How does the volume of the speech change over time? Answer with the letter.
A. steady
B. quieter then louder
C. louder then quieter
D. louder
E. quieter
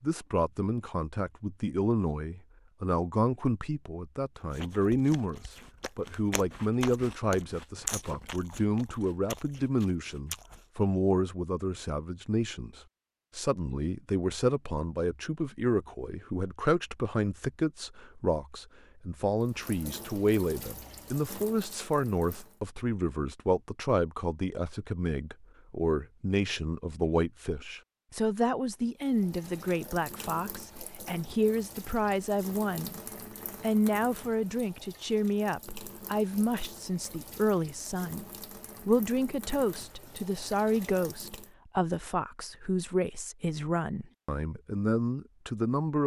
A.